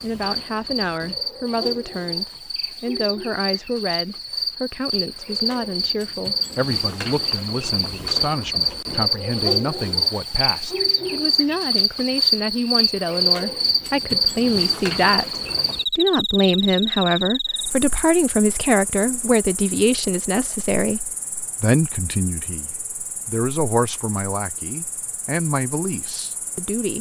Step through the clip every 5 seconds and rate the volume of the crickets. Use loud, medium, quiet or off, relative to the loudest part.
medium, loud, loud, medium, quiet, quiet.